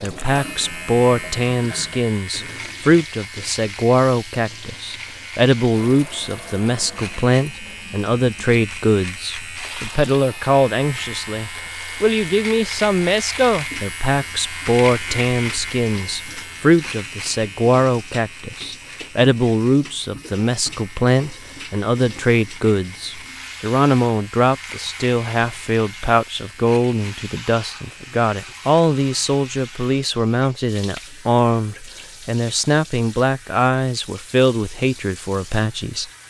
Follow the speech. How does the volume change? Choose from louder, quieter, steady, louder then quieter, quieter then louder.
steady.